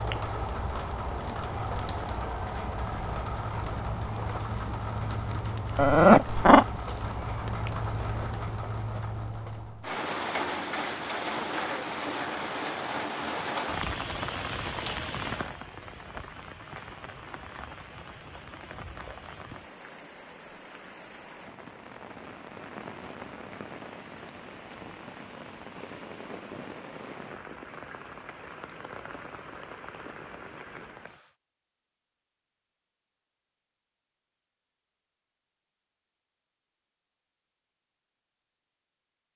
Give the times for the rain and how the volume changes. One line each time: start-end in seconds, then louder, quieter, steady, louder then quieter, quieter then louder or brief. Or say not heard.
0.0-31.4 quieter.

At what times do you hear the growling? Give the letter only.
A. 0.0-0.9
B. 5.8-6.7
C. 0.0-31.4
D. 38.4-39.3
B.